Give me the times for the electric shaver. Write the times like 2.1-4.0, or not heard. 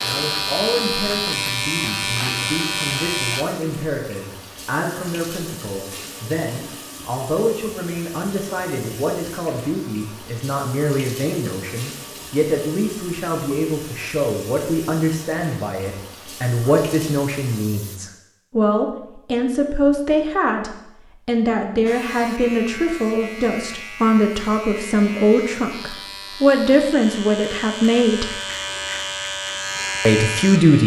0.0-3.5, 21.9-30.8.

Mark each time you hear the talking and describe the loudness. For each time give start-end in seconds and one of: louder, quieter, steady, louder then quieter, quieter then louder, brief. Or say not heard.
0.0-28.4 louder
30.1-30.8 brief.